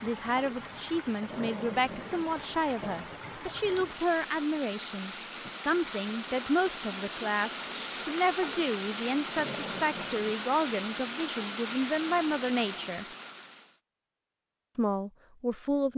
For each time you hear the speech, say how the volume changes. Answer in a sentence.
You can hear the speech from 0.0 to 13.1 s, at a steady volume; and briefly from 14.8 to 15.9 s.